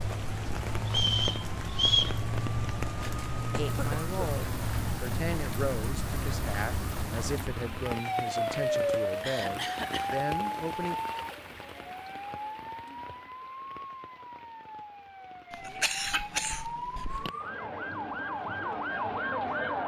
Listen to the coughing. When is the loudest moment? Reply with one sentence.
The loudest moment of the coughing is at 16 seconds.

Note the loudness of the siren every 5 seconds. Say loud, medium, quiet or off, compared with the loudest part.
loud, loud, medium, loud.